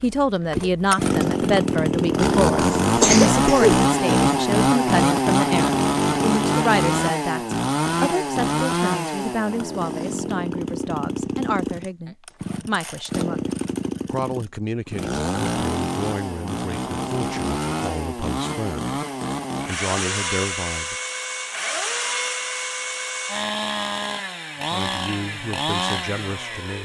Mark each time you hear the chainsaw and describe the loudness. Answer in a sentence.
The chainsaw can be heard from 0.0 to 26.7 s, getting quieter.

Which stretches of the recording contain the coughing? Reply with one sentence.
You can hear the coughing from 2.5 to 3.9 s.